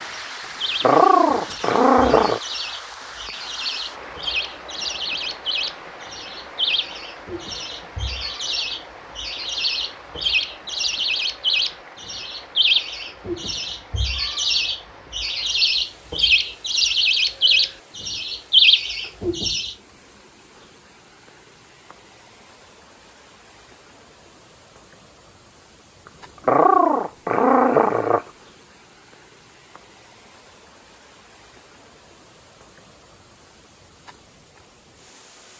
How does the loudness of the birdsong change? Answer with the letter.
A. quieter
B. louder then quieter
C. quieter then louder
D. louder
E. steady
D.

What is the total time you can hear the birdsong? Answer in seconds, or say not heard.
20 s.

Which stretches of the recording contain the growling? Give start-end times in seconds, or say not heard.
0.8-2.4, 26.4-28.2.